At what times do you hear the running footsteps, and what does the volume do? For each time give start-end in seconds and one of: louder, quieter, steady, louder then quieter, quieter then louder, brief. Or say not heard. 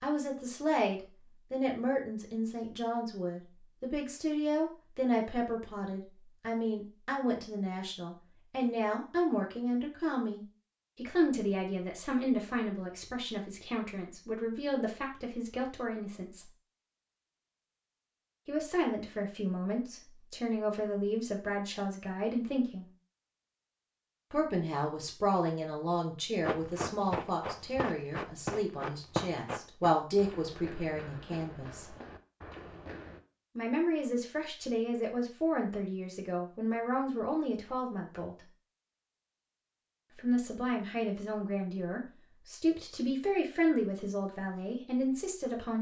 26.4-33.2 quieter.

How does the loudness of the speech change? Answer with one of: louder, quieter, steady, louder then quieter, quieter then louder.
steady.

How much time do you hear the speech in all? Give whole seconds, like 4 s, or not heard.
39 s.